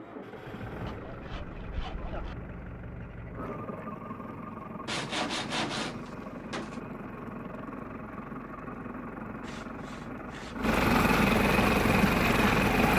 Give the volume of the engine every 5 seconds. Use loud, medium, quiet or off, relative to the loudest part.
quiet, quiet, loud.